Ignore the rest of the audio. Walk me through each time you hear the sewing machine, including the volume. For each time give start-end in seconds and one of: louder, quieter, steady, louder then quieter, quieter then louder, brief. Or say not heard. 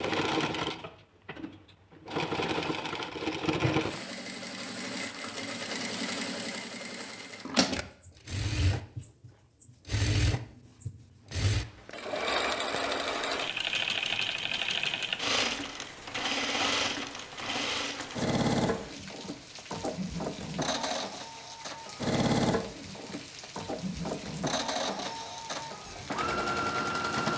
0.0-27.3 steady.